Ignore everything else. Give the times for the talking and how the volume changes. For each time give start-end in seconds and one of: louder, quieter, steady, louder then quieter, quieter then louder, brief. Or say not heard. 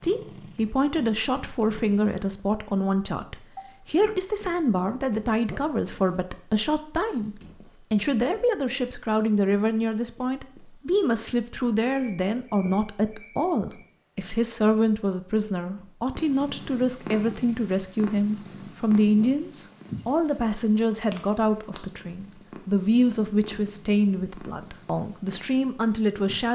0.0-26.5 steady.